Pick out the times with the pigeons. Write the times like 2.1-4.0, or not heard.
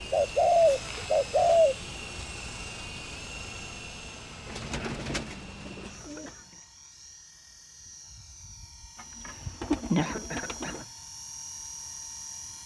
0.1-1.8, 4.5-6.3, 9.2-10.8.